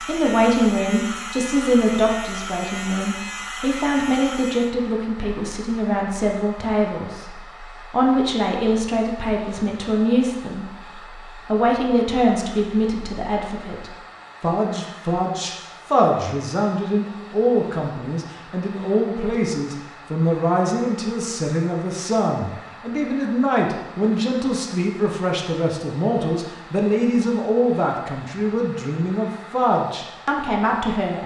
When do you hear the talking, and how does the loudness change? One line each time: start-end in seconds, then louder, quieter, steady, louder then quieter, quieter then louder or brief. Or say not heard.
0.0-31.2 steady.